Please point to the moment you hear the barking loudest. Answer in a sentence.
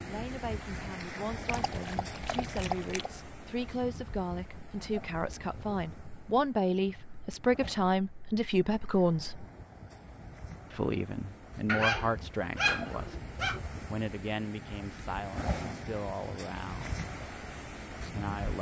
The loudest moment of the barking is at 12 seconds.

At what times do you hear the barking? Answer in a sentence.
You can hear the barking from 1.4 to 3.1 s and from 11.7 to 13.6 s.